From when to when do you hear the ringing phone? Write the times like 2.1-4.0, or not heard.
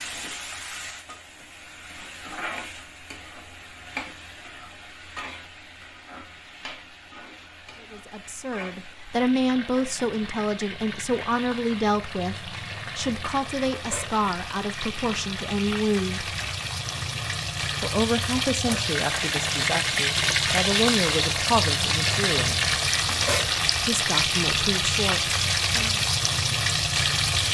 not heard.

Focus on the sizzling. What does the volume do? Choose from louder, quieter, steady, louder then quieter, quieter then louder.
louder.